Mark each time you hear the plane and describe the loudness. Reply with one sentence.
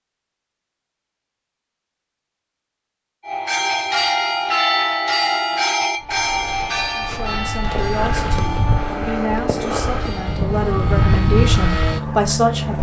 The plane can be heard from 5.9 to 12.7 s, getting louder.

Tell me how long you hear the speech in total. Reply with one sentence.
You can hear the speech for 6 seconds altogether.